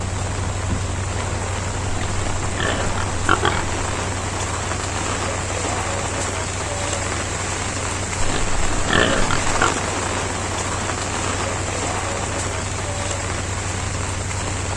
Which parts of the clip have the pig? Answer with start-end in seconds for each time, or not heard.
1.9-3.8, 8.2-9.8.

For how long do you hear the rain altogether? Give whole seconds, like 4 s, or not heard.
15 s.